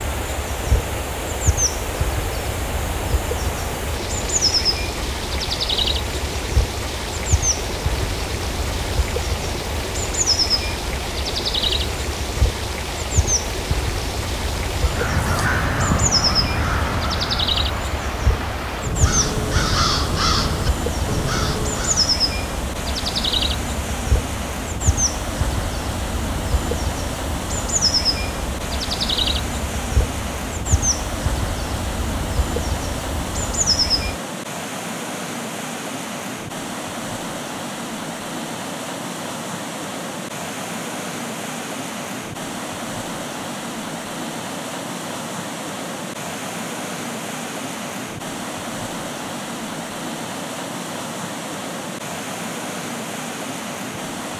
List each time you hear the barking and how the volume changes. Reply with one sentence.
The barking can't be heard in this clip.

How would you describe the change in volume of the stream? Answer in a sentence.
The loudness of the stream stays about the same.